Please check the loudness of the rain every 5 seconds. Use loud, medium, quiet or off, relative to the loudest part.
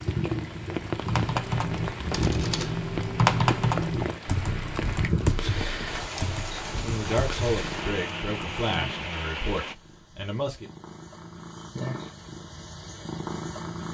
loud, loud, off.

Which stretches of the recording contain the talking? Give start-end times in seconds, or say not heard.
6.8-10.7.